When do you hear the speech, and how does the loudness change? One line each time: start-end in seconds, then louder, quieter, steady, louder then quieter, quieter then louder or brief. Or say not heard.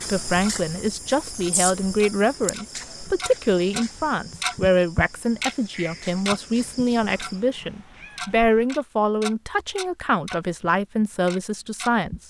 0.1-12.2 steady.